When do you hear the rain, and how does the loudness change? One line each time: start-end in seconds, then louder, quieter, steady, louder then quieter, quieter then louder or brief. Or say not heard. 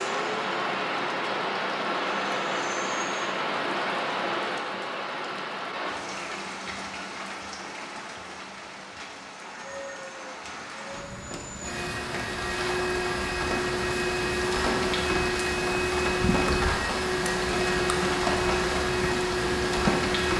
0.0-20.3 quieter then louder.